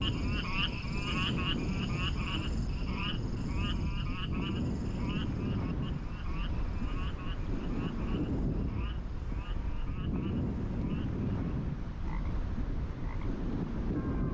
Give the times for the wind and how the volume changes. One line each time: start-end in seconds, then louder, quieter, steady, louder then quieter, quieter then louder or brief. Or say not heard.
0.0-14.2 steady.